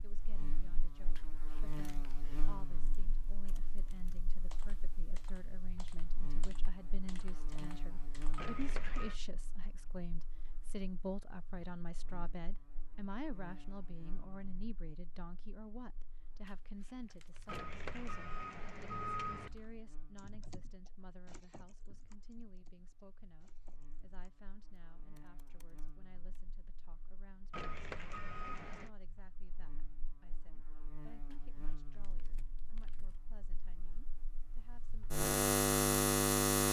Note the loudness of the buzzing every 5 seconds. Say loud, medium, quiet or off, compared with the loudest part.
quiet, quiet, quiet, quiet, quiet, quiet, quiet, loud.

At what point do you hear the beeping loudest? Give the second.
19 s.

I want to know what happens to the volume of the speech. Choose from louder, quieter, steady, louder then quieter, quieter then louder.
louder then quieter.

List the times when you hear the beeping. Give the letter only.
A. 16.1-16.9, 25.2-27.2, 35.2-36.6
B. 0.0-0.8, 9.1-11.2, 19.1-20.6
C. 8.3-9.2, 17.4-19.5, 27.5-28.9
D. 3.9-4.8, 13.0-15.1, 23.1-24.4
C.